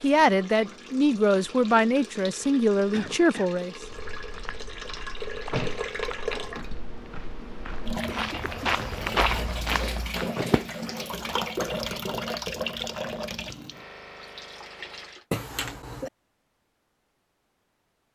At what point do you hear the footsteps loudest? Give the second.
9 s.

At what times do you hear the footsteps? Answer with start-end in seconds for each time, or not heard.
3.8-10.3.